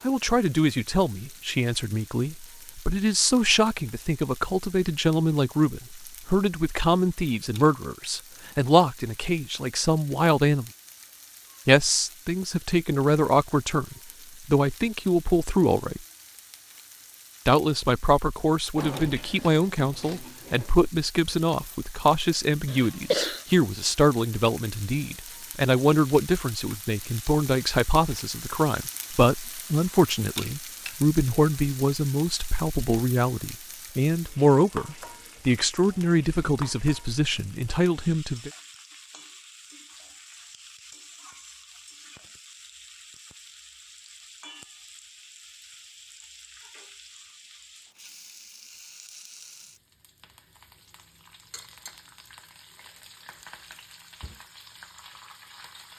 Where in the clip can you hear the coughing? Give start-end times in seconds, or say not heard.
22.6-23.4.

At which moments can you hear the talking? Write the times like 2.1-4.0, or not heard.
0.0-10.7, 11.7-16.0, 17.4-38.5.